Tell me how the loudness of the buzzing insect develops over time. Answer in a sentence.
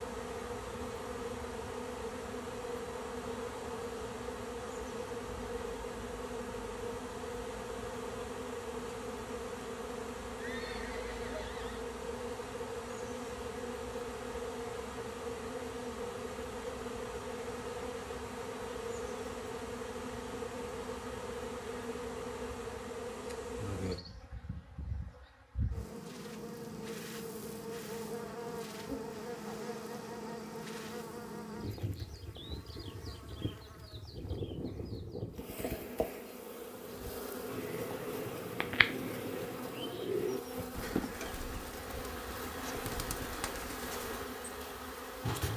The loudness of the buzzing insect stays about the same.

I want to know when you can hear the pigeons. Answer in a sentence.
You can hear the pigeons from 37.5 to 44.5 s.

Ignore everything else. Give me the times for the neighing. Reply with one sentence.
The neighing can be heard from 10.3 to 11.8 s.